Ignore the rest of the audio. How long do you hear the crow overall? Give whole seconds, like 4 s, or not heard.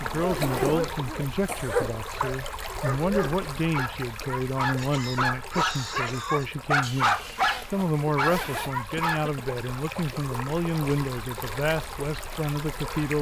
not heard.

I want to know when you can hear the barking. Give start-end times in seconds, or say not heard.
0.2-9.2.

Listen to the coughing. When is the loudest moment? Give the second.
2 s.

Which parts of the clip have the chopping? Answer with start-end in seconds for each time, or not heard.
not heard.